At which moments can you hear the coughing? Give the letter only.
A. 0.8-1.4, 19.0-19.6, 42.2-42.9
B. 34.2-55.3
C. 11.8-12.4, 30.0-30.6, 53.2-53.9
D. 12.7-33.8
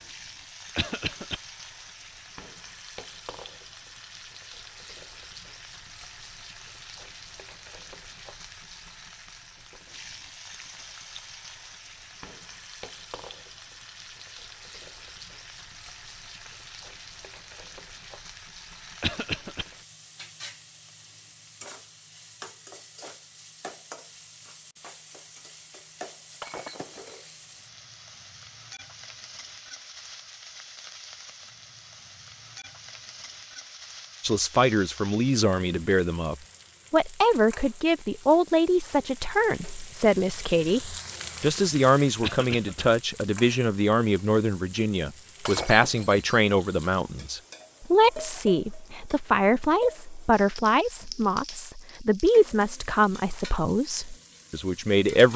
A.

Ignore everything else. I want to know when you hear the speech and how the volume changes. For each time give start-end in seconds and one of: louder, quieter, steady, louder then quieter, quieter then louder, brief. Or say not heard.
34.2-55.3 steady.